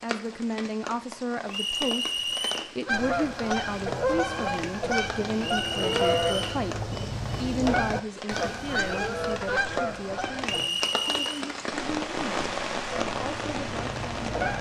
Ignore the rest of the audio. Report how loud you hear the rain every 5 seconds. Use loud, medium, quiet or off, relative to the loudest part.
medium, medium, loud.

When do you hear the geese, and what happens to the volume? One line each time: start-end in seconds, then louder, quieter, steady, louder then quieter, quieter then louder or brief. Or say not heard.
2.9-10.7 steady
12.8-14.5 brief.